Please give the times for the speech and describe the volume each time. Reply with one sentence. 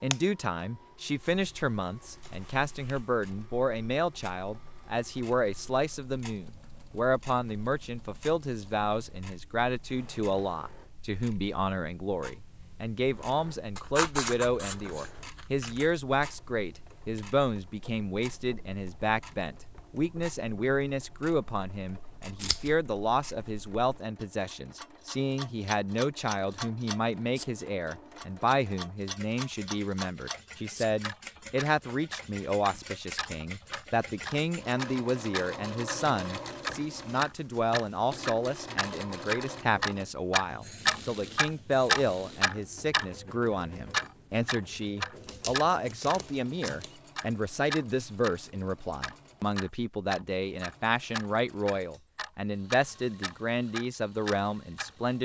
The speech can be heard from 0.0 to 55.1 s, at a steady volume.